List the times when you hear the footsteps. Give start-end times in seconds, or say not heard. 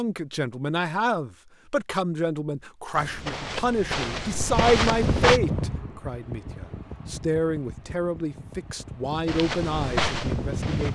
2.9-5.4, 9.2-10.8.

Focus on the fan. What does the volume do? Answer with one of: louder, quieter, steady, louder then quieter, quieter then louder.
quieter then louder.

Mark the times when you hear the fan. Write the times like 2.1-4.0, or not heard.
4.3-10.8.